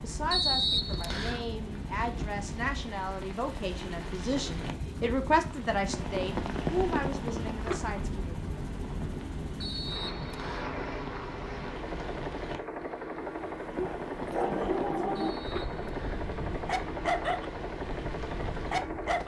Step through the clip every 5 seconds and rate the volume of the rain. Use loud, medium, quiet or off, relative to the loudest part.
medium, loud, medium, medium.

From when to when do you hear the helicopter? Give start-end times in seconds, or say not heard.
0.0-19.2.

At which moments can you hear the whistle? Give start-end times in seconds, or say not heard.
0.3-1.4, 9.6-10.8, 15.2-16.3.